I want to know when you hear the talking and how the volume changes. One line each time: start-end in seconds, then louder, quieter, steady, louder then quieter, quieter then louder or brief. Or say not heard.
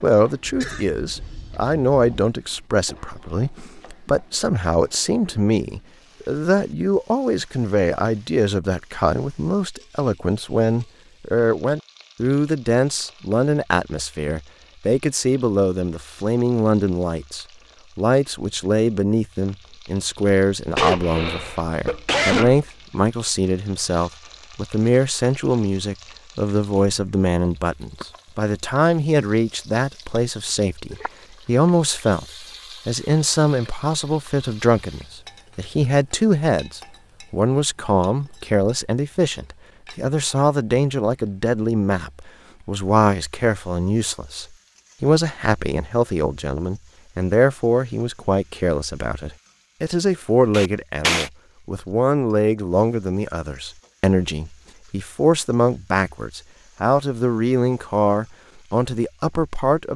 0.0-59.9 steady.